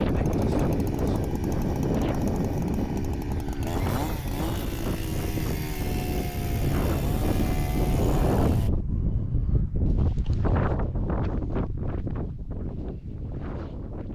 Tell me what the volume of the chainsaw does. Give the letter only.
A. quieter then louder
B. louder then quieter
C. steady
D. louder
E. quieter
C.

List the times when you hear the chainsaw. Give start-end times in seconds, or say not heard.
0.0-8.7.